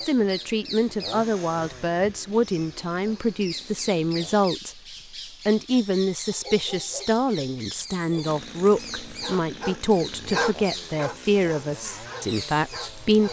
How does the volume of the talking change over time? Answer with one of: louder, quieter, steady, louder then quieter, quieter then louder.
steady.